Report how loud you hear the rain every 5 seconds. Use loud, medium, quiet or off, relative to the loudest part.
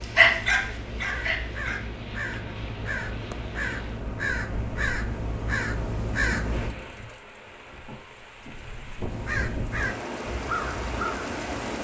quiet, medium, loud.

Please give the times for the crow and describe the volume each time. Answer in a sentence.
The crow can be heard from 0.0 to 6.8 s, getting louder; and briefly from 9.1 to 11.4 s.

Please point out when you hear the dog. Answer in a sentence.
The dog can be heard from 0.0 to 1.9 s.